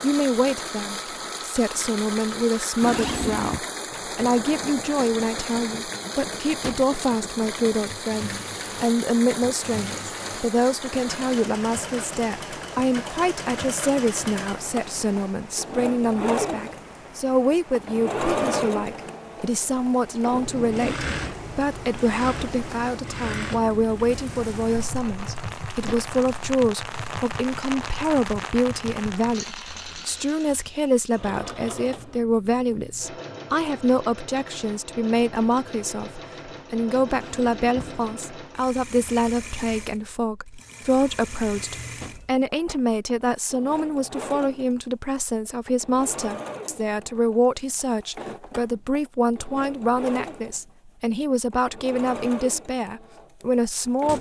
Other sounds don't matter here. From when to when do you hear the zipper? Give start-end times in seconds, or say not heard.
2.8-3.6, 20.6-21.1, 37.0-38.4.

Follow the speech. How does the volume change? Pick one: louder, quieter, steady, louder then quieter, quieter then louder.
steady.